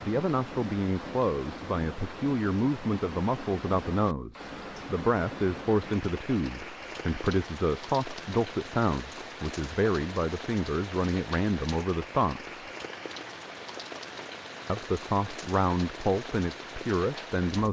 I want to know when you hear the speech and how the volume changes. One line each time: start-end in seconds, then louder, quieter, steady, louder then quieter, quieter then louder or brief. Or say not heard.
0.0-12.6 steady
14.7-17.6 brief.